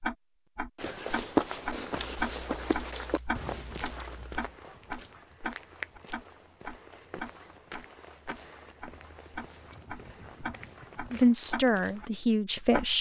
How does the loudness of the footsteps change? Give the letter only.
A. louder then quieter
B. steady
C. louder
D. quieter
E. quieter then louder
D.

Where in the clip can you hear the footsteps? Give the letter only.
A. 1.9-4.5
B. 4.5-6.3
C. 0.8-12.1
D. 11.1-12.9
C.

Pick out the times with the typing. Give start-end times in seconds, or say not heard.
1.9-4.5.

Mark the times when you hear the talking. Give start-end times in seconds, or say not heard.
11.1-12.9.